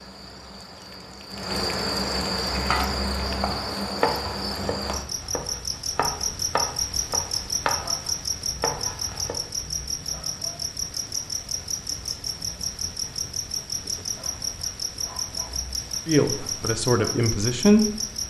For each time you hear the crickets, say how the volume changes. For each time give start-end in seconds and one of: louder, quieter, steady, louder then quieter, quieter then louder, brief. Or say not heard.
0.0-18.2 steady.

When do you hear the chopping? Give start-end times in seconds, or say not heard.
2.5-9.3.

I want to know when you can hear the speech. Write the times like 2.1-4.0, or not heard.
16.1-17.9.